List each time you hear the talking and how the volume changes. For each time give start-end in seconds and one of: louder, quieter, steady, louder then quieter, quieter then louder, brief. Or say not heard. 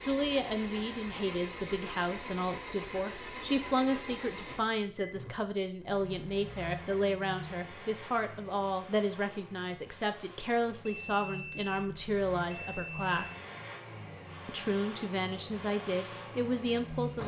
0.0-13.3 steady
14.4-17.2 brief.